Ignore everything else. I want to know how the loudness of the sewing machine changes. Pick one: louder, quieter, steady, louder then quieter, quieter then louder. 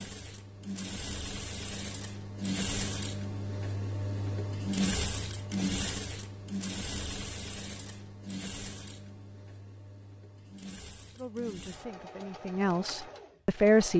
quieter.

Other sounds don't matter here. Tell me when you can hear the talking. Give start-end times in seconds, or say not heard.
11.2-13.9.